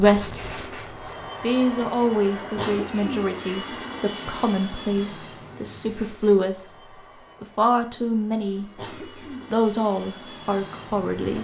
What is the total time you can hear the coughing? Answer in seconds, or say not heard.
2 s.